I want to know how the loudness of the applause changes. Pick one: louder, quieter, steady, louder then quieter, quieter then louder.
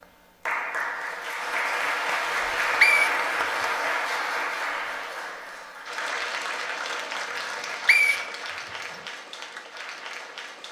quieter.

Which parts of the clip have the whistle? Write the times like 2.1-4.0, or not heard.
2.2-3.2, 7.3-9.0.